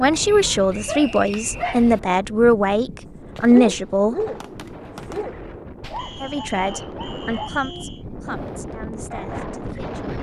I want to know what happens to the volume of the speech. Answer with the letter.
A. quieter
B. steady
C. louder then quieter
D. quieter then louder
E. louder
A.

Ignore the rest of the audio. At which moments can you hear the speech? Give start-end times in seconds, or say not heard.
0.0-4.2, 6.2-10.1.